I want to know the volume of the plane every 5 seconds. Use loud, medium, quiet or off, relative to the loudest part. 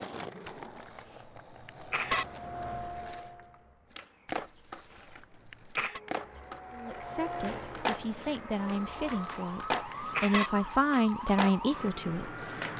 loud, loud, off.